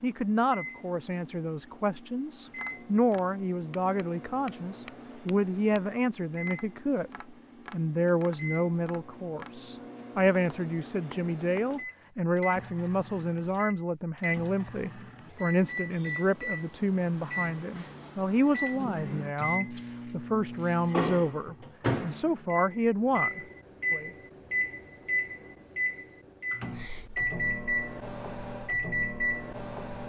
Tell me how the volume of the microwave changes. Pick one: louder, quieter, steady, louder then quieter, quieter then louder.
louder.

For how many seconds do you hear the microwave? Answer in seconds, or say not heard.
30 s.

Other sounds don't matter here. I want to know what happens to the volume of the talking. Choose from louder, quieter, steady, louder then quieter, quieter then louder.
steady.